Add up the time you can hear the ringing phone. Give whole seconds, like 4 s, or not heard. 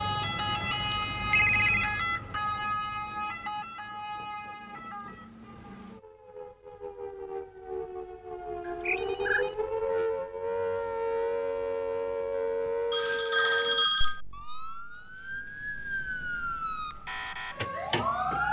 4 s.